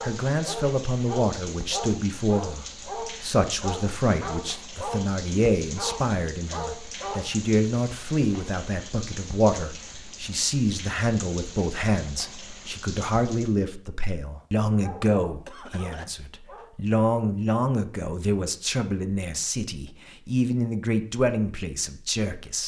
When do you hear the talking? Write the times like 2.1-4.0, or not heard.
0.0-22.6.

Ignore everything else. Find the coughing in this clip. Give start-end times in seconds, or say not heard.
15.2-16.1.